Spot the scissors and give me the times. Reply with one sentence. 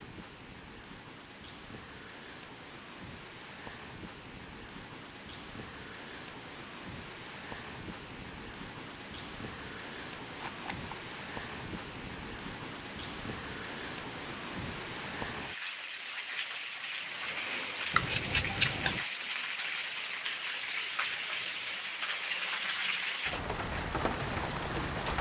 The scissors can be heard from 10.3 to 10.9 s and from 17.9 to 19.0 s.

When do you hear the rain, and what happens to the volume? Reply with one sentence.
You can hear the rain from 0.0 to 25.1 s, getting louder.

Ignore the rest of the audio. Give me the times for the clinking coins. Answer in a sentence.
You can't hear the clinking coins here.